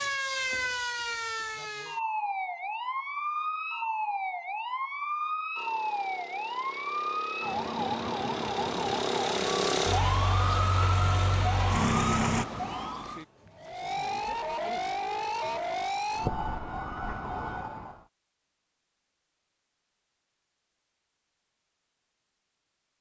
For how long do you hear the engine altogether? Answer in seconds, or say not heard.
7 s.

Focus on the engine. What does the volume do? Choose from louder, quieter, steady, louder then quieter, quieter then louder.
louder.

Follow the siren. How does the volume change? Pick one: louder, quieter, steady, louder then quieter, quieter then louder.
steady.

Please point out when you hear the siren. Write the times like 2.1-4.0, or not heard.
0.0-18.1.